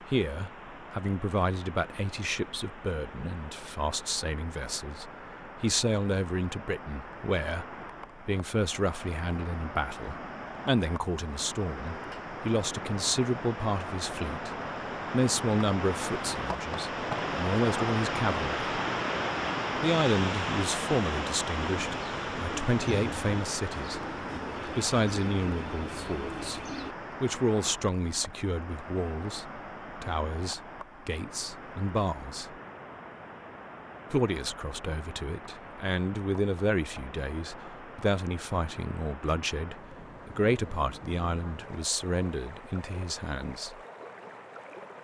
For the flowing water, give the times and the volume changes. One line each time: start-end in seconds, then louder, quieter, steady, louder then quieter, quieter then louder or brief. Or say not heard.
0.0-44.9 louder then quieter.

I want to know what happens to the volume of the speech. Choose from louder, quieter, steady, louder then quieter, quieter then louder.
steady.